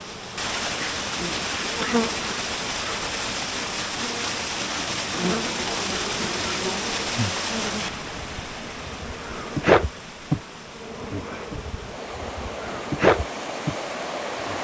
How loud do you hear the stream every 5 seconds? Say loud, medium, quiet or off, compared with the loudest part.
loud, loud, medium.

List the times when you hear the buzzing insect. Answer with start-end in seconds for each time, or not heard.
0.0-14.5.